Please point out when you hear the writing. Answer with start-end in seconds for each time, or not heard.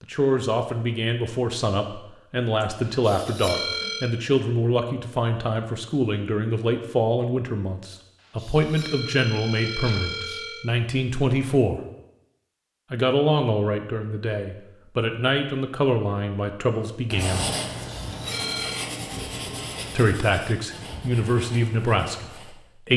17.1-22.6.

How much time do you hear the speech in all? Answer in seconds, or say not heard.
19 s.